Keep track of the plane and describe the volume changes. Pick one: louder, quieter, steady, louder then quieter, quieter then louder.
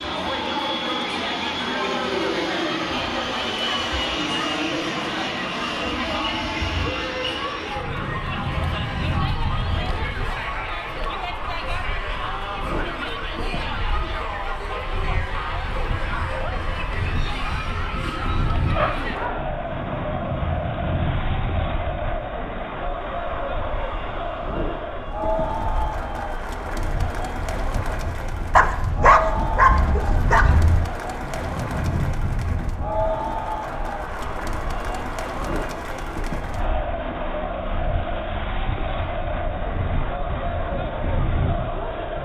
quieter.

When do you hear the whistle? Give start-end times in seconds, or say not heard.
not heard.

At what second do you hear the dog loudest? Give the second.
29 s.